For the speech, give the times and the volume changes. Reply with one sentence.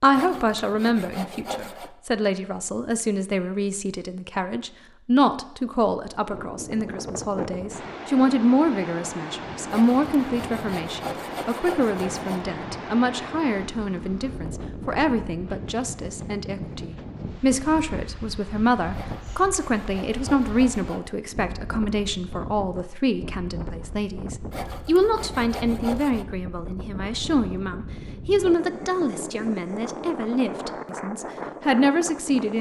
You can hear the speech from 0.0 to 32.5 s, at a steady volume.